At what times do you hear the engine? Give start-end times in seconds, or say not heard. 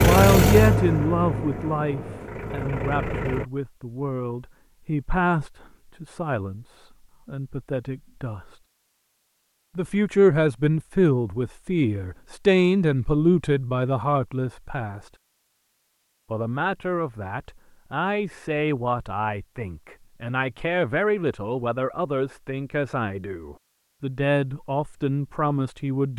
0.0-3.5.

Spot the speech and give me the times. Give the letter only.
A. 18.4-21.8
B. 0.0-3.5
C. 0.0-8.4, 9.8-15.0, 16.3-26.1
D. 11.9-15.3
C.